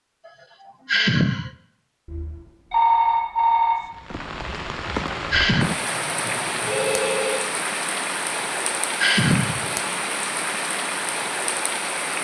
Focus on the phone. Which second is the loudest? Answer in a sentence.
The volume of the phone peaks at 3 seconds.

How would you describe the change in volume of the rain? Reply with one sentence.
The loudness of the rain stays about the same.